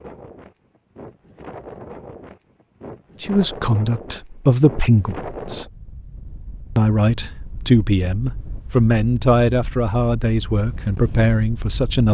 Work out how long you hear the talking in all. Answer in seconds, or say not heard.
8 s.